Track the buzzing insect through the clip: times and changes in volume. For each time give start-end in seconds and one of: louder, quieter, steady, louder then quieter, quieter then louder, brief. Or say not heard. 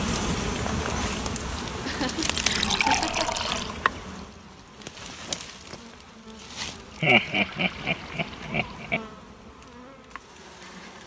0.0-11.0 quieter.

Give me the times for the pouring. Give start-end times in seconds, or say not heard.
2.4-3.8, 7.2-8.9.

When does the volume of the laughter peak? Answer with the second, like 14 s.
7 s.